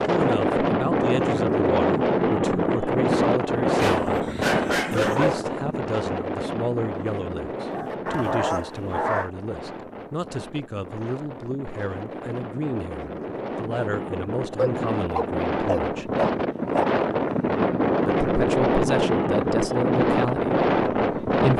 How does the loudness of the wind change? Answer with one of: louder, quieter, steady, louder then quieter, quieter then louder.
quieter then louder.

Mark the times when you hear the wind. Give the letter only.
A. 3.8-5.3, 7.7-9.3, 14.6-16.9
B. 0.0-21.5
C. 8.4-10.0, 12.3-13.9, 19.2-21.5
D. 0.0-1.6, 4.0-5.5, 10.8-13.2
B.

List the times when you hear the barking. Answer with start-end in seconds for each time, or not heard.
3.8-5.3, 7.7-9.3, 14.6-16.9.